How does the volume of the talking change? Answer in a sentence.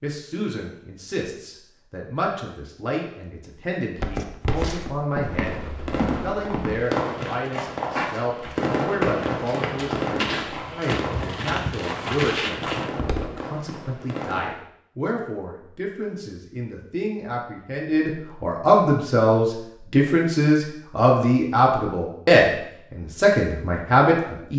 The volume of the talking goes up.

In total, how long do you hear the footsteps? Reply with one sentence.
You can hear the footsteps for 9 seconds altogether.